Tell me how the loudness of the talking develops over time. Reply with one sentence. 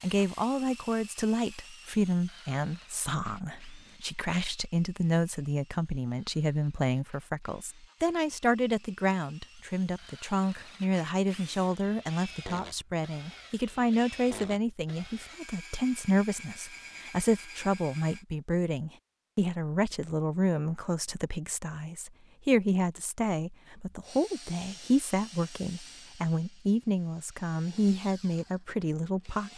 The loudness of the talking stays about the same.